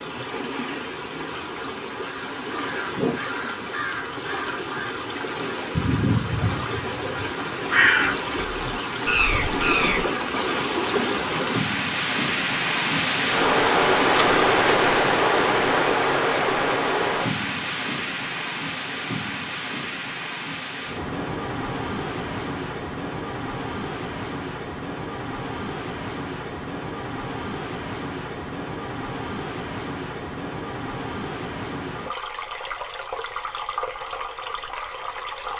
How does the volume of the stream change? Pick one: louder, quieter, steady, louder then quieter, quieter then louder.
louder then quieter.